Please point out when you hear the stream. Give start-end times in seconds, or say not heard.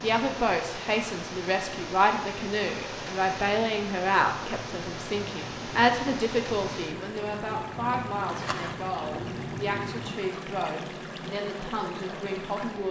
0.0-12.8.